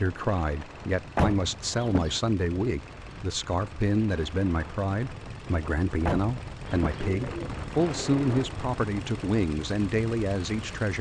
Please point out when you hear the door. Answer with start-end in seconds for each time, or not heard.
1.1-2.2, 6.0-7.0.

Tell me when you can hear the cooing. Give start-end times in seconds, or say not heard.
7.0-8.6.